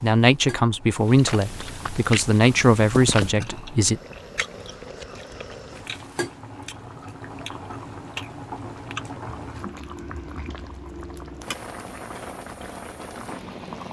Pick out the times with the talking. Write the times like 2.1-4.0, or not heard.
0.0-4.0.